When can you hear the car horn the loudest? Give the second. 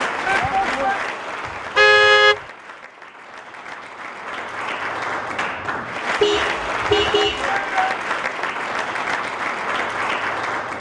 2 s.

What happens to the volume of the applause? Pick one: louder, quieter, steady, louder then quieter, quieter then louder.
quieter then louder.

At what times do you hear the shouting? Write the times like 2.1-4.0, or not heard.
0.2-1.0, 6.9-8.0.